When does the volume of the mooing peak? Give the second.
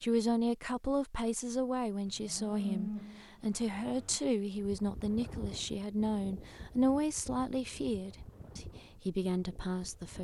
3 s.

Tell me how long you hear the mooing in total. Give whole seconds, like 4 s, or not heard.
2 s.